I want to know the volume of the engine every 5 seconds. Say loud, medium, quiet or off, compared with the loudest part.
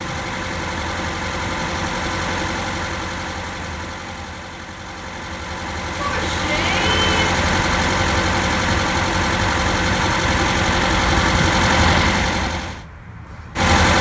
medium, loud, loud.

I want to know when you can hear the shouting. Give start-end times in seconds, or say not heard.
6.0-7.3.